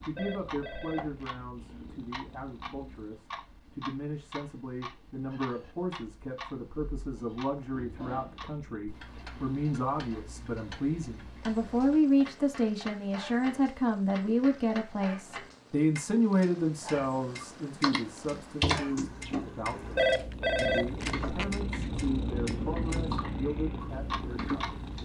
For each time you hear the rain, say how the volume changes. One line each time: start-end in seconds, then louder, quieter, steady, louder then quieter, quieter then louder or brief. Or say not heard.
not heard.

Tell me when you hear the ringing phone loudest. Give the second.
20 s.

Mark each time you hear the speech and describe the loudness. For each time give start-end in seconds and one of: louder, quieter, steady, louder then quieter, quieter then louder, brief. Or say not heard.
0.0-24.8 louder then quieter.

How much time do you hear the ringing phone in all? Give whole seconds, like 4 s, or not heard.
3 s.